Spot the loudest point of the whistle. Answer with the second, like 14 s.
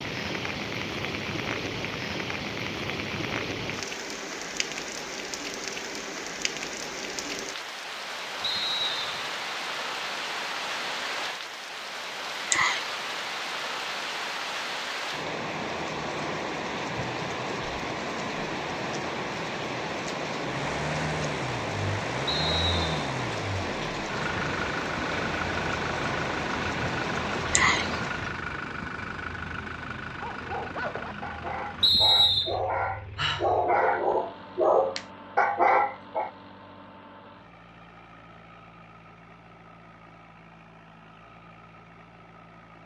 32 s.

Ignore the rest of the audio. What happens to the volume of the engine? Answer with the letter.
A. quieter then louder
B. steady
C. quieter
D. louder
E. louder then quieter
C.